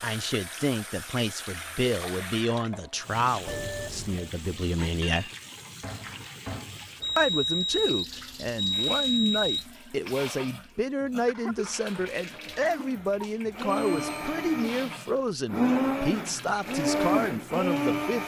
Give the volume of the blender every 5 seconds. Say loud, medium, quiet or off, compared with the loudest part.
off, off, medium, loud.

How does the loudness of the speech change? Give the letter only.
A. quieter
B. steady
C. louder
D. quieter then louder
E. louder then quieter
B.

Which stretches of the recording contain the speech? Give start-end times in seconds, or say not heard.
0.0-5.3, 7.2-18.2.